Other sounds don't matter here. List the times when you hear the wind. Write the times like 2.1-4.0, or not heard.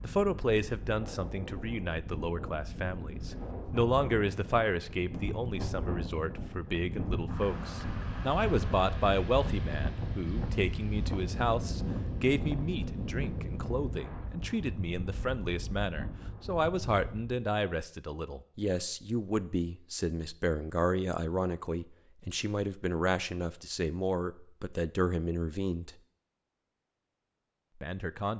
0.0-17.4.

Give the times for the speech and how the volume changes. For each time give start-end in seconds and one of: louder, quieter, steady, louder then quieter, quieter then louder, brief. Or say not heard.
0.0-25.9 steady
27.8-28.3 brief.